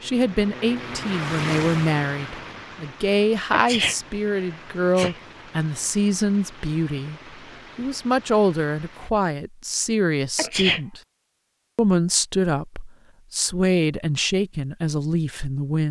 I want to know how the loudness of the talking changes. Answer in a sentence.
The volume of the talking stays about the same.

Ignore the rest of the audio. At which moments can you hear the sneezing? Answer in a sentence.
You can hear the sneezing from 3.5 to 5.2 s and from 10.3 to 10.8 s.